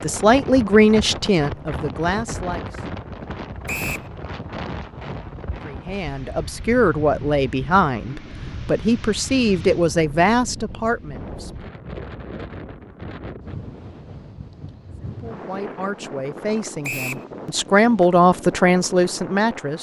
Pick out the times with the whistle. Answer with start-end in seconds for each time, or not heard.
3.6-4.1, 16.8-17.2.